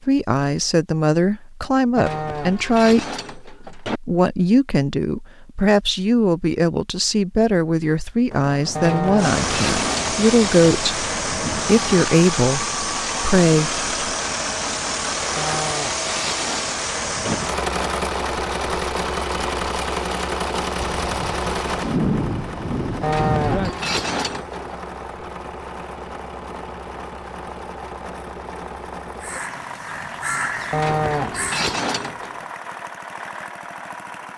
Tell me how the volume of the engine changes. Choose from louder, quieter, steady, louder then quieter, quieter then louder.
quieter.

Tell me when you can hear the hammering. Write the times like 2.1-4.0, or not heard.
not heard.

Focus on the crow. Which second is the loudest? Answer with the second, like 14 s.
30 s.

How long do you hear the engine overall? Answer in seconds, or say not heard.
25 s.